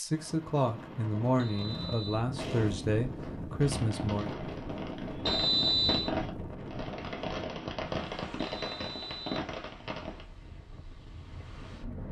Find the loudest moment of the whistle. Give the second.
6 s.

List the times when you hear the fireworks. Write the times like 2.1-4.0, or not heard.
0.1-10.2.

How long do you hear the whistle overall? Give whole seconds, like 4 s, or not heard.
3 s.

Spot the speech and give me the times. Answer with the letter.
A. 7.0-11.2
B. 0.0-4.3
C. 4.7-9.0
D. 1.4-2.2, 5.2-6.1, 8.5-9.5
B.